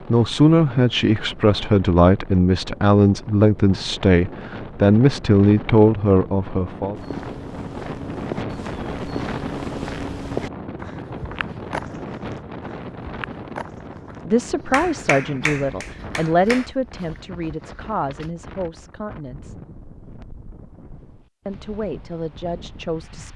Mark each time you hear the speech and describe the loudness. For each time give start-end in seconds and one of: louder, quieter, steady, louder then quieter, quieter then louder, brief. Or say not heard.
0.1-7.0 steady
14.2-19.6 quieter
21.4-23.3 brief.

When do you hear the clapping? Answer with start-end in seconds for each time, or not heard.
14.7-16.7.